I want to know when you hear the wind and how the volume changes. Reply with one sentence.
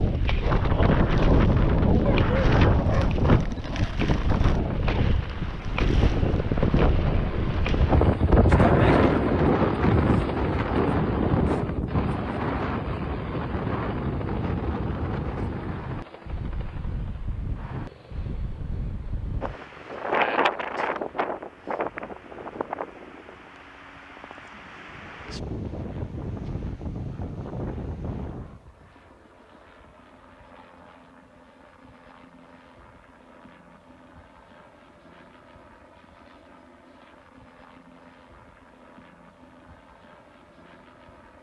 The wind can be heard from 0.0 to 28.6 s, getting quieter.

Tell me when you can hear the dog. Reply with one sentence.
The dog can be heard from 2.0 to 3.1 s.